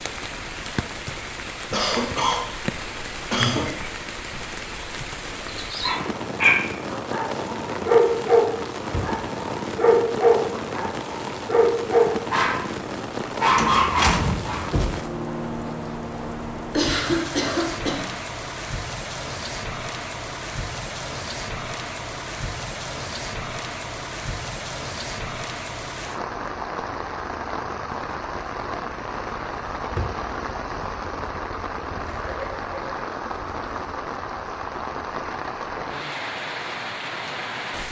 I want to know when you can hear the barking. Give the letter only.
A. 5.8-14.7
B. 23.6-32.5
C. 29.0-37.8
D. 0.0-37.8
A.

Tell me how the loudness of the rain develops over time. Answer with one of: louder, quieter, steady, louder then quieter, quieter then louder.
steady.